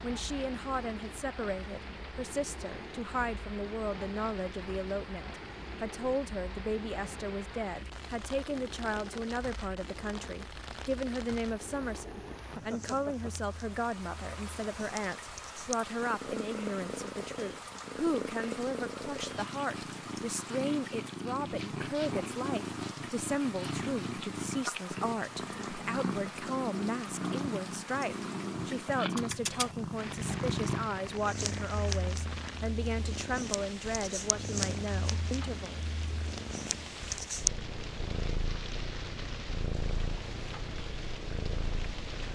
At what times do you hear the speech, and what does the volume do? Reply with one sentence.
The speech can be heard from 0.0 to 35.8 s, at a steady volume.